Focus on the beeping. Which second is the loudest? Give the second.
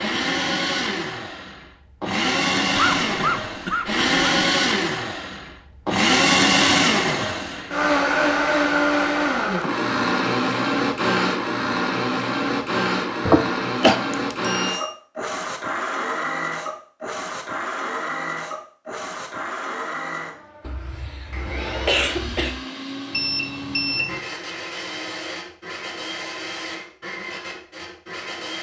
24 s.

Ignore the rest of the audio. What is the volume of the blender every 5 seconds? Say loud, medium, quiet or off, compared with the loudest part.
loud, loud, loud, medium, quiet, quiet.